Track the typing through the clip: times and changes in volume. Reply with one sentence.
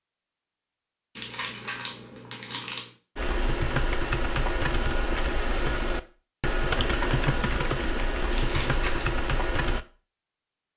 You can hear the typing from 3.1 to 9.8 s, at a steady volume.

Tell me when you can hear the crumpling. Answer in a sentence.
You can hear the crumpling from 1.1 to 2.9 s and from 8.3 to 9.1 s.